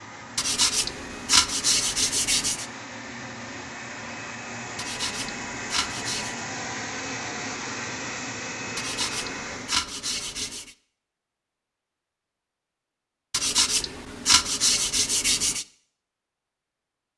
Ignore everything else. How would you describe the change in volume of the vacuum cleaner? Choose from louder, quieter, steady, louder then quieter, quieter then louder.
louder.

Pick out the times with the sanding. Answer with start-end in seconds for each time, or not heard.
0.3-2.6, 4.8-6.4, 8.8-10.8, 13.3-15.7.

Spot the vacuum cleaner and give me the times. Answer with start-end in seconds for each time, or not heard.
0.0-9.8.